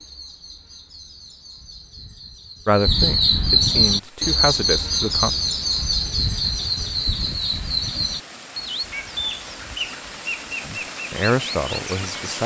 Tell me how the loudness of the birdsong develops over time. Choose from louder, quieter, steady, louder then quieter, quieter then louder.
louder then quieter.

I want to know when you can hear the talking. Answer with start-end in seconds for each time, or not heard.
2.6-5.3, 10.7-12.4.